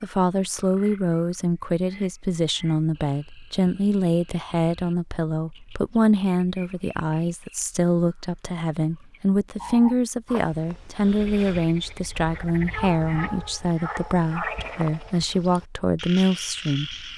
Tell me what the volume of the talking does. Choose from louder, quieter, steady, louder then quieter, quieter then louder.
steady.